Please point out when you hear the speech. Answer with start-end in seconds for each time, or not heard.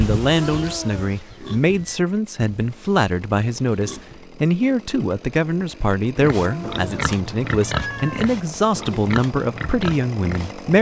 0.0-10.7.